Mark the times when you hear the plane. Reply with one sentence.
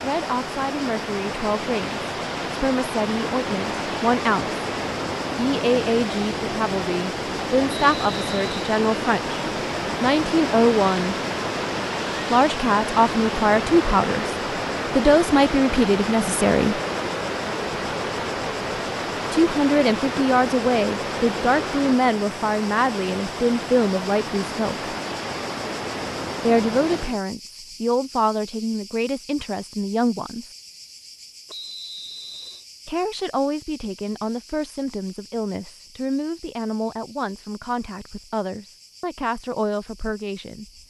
The plane can't be heard in this clip.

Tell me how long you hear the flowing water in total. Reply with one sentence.
The flowing water can be heard for 27 seconds in total.